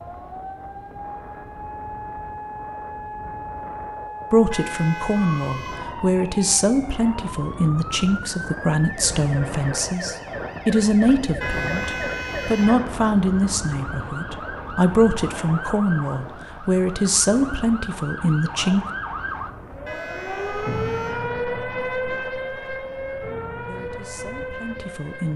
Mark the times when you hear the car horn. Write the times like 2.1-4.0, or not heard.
4.5-6.0, 11.4-12.8, 19.9-21.4.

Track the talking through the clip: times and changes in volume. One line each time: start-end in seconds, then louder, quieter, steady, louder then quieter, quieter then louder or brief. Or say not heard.
4.3-18.9 steady
23.6-25.3 brief.